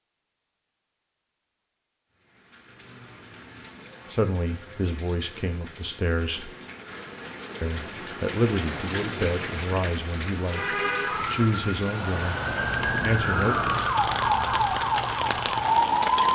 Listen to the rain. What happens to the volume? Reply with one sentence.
The loudness of the rain goes up.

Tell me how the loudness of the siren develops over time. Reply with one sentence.
The volume of the siren goes up.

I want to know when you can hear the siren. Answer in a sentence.
You can hear the siren from 11.1 to 16.2 s.